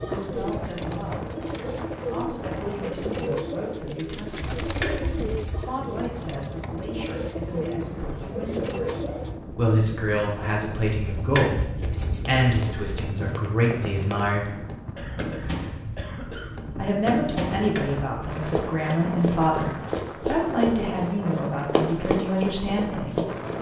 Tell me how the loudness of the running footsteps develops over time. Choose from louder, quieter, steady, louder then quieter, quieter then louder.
louder.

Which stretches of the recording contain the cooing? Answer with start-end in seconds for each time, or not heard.
0.0-9.4.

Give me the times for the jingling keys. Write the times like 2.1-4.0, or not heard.
4.6-5.7, 10.9-13.2, 17.6-18.4.